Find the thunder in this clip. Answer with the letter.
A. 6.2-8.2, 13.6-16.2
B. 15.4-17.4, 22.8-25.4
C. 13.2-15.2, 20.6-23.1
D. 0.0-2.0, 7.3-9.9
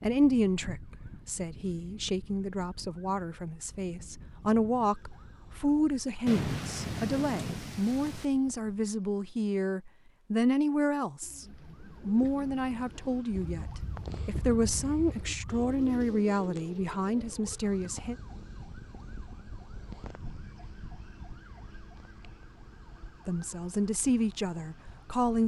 A.